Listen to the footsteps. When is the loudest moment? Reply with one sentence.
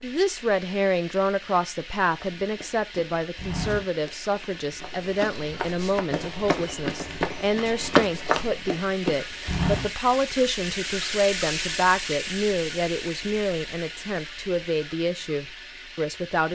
The volume of the footsteps peaks at 8 seconds.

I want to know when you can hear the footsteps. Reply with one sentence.
The footsteps can be heard from 2.2 to 9.9 s.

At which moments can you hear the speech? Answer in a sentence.
The speech can be heard from 0.0 to 16.4 s.